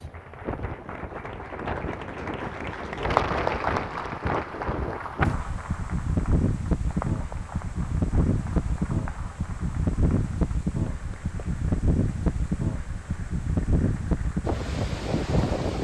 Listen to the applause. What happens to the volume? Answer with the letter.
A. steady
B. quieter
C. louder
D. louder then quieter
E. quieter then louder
D.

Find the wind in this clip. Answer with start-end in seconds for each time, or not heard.
0.0-15.7.